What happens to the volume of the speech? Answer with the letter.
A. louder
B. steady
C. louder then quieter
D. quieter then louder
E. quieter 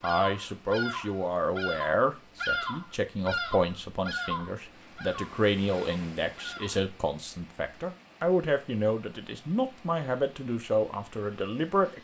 B.